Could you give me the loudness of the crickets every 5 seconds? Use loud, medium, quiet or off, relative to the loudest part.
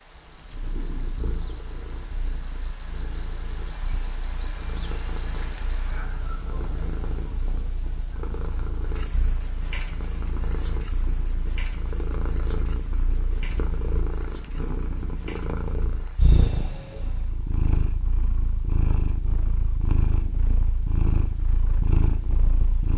loud, loud, medium, quiet, off.